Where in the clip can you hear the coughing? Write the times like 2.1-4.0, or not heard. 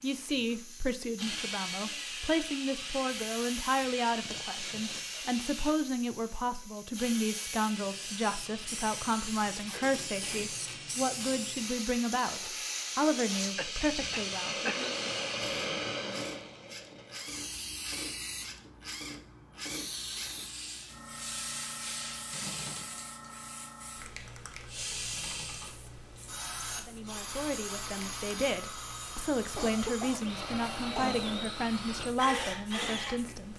4.2-5.0, 13.6-15.2, 29.6-31.3.